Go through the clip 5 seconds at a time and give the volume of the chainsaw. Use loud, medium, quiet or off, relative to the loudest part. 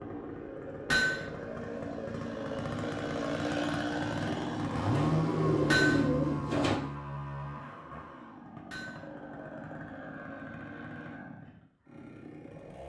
loud, loud, medium.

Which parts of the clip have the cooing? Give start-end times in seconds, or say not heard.
4.2-6.8.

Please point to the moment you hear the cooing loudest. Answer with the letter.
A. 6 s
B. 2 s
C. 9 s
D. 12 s
A.